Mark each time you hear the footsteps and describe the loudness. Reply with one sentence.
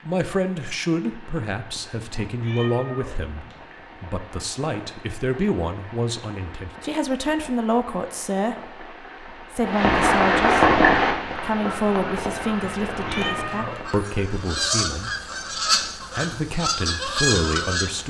You can't hear the footsteps here.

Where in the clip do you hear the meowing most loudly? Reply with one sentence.
The volume of the meowing peaks at 13 seconds.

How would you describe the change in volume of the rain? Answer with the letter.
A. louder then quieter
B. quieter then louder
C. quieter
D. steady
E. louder
A.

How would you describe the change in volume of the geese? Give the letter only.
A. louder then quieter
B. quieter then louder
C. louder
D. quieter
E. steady
C.